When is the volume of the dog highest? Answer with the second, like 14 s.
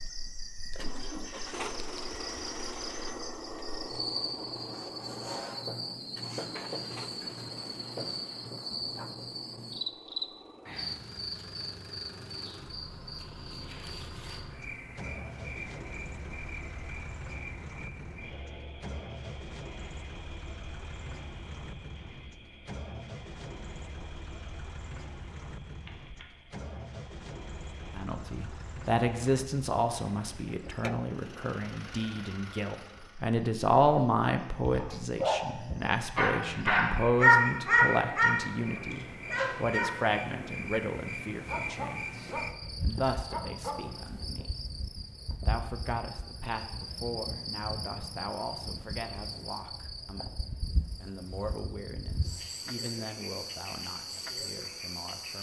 37 s.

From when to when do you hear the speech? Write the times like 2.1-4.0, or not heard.
27.9-44.8, 45.4-50.4, 51.0-55.3.